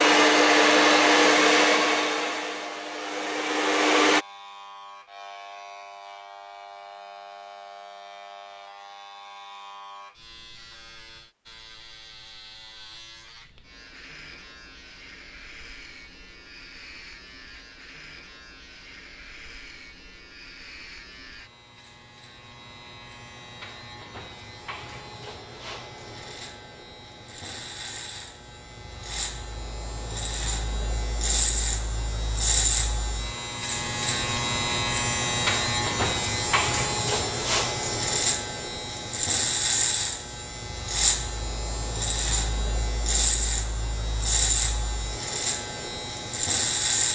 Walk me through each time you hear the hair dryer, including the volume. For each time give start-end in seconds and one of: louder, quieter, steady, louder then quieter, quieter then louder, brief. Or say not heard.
0.0-4.2 quieter then louder.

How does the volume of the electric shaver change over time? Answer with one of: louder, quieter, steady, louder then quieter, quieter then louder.
louder.